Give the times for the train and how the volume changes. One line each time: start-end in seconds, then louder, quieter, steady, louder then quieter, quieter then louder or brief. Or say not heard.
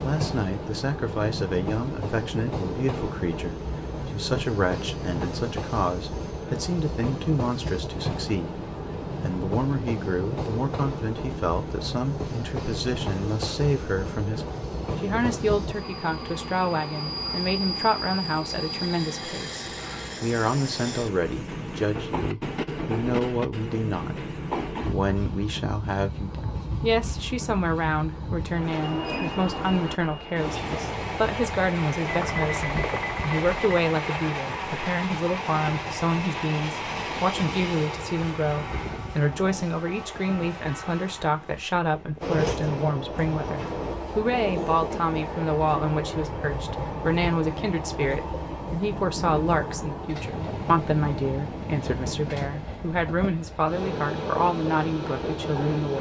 0.0-55.9 steady.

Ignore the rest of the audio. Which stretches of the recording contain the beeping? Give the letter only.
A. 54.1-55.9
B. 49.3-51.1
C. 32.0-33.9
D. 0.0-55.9
C.